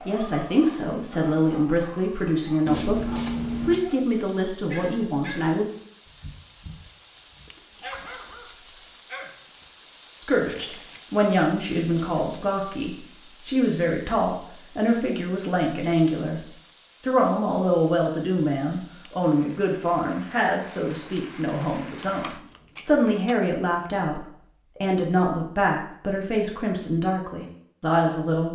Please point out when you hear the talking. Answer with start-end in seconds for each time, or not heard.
0.1-5.7, 10.2-16.4, 17.1-28.4.